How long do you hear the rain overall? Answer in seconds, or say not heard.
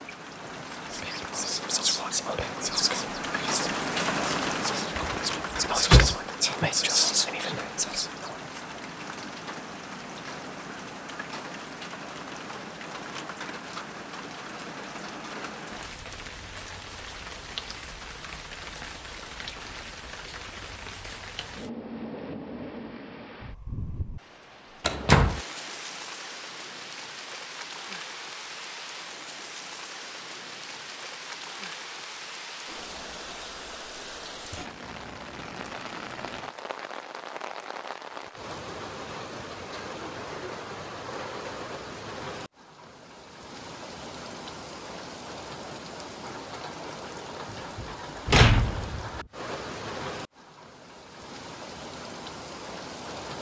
53 s.